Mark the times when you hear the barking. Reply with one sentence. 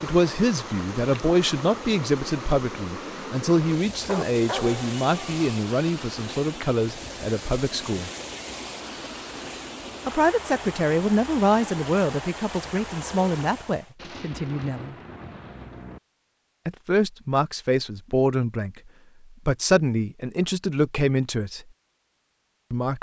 The barking can be heard from 4.0 to 5.5 s.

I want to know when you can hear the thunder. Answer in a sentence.
The thunder can be heard from 13.9 to 16.0 s.